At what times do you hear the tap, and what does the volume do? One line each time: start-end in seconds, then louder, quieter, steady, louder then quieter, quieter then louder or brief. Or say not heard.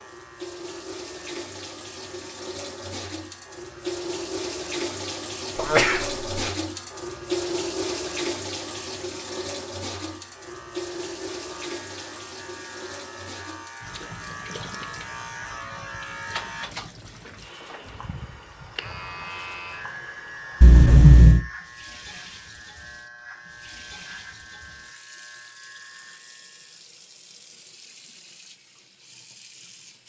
0.0-30.0 quieter.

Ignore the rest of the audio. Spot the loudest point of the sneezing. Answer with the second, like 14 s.
21 s.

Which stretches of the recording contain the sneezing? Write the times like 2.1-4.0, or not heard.
5.5-6.5, 20.6-21.4.